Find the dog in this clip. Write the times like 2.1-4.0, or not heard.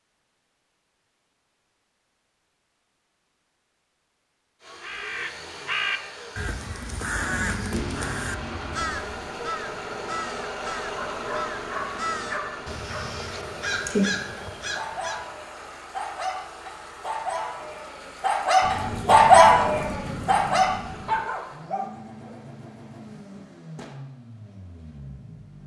10.9-22.4.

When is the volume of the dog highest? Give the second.
19 s.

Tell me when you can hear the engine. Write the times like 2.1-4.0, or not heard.
4.6-25.6.